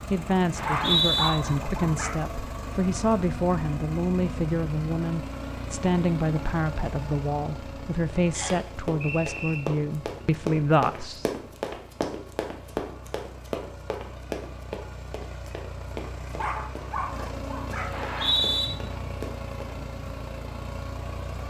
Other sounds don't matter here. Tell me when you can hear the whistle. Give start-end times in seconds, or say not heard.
0.6-1.3, 8.3-9.6, 17.9-18.7.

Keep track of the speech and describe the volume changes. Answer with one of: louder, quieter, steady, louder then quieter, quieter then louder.
steady.